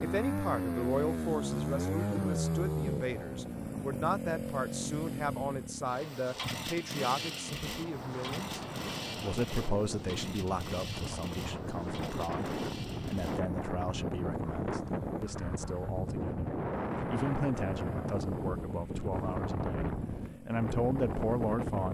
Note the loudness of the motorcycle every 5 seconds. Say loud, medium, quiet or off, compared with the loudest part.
loud, medium, quiet, quiet, quiet.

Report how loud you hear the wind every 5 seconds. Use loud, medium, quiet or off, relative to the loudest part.
off, medium, loud, loud, loud.